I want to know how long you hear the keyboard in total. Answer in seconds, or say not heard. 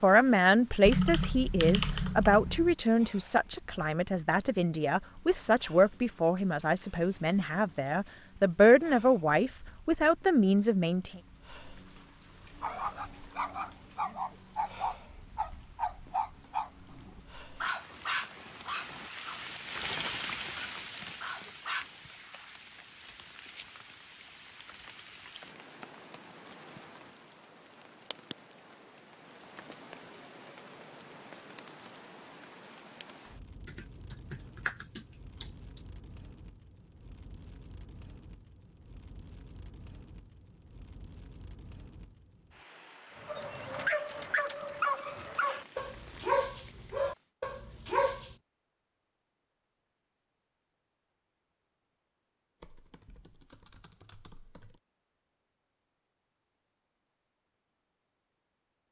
6 s.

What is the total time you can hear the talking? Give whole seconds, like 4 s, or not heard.
11 s.